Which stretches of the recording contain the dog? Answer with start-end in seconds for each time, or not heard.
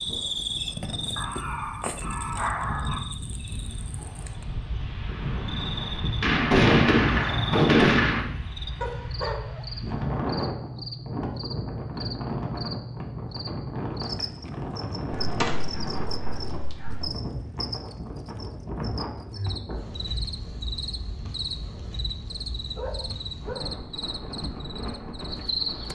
1.1-3.0, 8.8-10.4, 15.1-17.1, 22.8-23.7.